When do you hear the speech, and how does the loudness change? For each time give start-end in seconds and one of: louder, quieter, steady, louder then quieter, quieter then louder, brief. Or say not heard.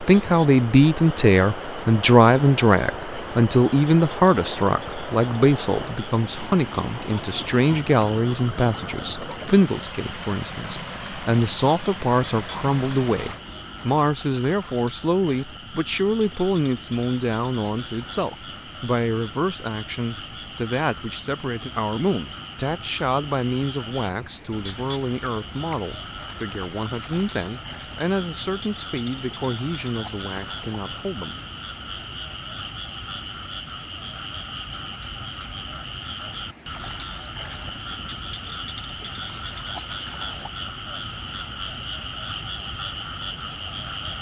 0.0-31.4 quieter.